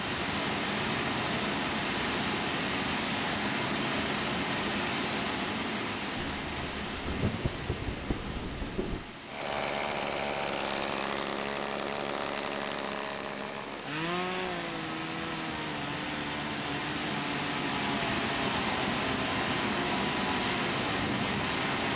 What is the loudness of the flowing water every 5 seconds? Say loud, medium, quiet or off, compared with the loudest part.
loud, medium, quiet, loud, loud.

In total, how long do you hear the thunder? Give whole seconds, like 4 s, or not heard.
3 s.